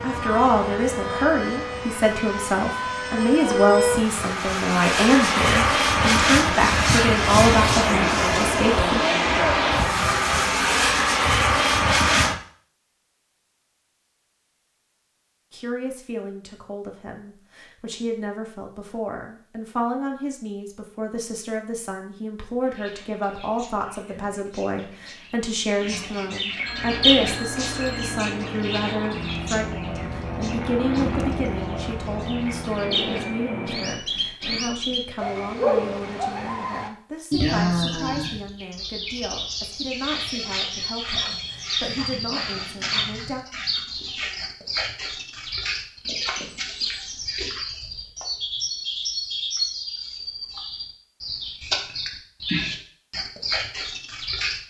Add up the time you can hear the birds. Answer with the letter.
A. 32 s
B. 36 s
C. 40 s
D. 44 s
A.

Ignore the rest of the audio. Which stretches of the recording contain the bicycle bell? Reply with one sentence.
The bicycle bell can be heard from 26.6 to 28.2 s.